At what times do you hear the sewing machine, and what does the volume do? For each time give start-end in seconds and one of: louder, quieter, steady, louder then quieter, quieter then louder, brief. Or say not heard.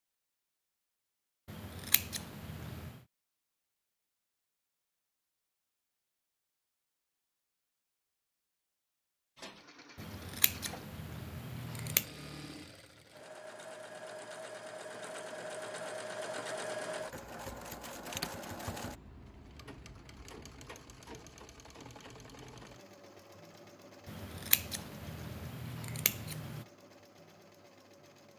9.3-28.3 louder then quieter.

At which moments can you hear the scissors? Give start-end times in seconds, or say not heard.
1.4-3.0, 9.9-12.1, 24.1-26.6.